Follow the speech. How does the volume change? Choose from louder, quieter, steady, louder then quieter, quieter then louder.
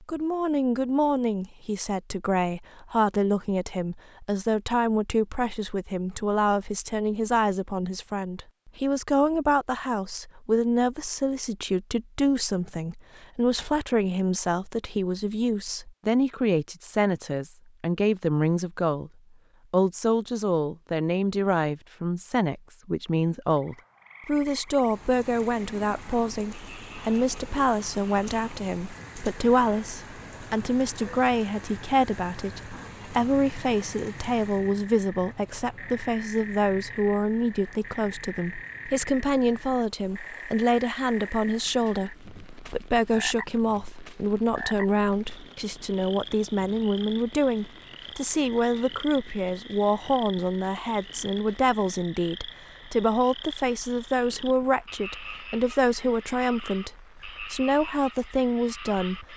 steady.